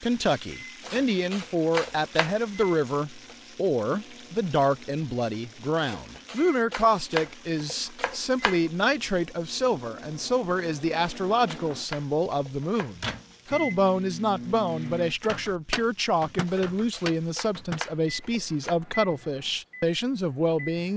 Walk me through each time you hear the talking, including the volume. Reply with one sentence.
You can hear the talking from 0.0 to 20.9 s, at a steady volume.